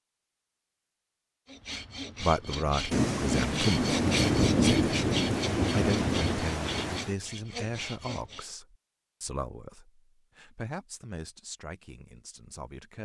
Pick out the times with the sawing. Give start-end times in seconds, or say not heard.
1.4-8.5.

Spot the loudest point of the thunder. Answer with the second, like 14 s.
5 s.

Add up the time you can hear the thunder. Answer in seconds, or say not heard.
4 s.